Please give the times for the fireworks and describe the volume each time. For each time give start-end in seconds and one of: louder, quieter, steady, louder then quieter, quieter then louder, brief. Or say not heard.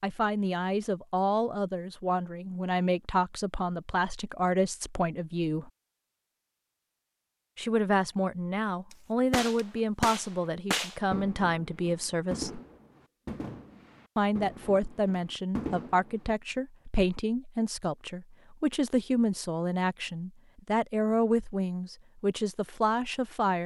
8.9-16.1 quieter.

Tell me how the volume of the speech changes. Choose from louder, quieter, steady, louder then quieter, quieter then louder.
steady.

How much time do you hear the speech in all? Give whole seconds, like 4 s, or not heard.
20 s.